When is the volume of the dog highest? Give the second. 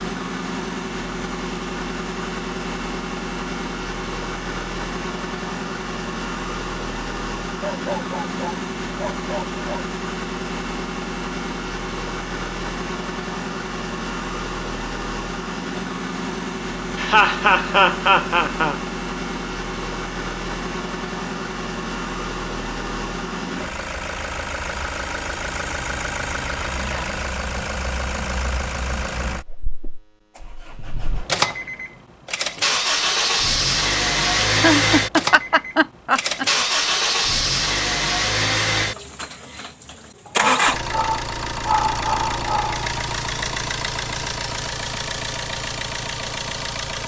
42 s.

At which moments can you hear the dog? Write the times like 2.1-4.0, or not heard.
7.6-9.9, 40.2-42.9.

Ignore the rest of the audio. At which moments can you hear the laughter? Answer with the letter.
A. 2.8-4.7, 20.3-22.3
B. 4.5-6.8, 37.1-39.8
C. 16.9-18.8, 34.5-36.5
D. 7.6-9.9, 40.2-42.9
C.